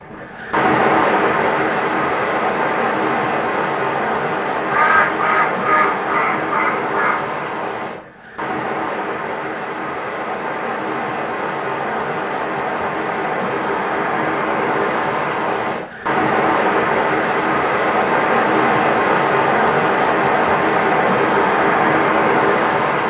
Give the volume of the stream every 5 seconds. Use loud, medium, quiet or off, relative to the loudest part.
loud, medium, medium, loud, loud.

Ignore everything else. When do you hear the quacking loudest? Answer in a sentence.
The loudest moment of the quacking is at 5 seconds.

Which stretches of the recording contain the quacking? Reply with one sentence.
The quacking can be heard from 4.7 to 7.3 s.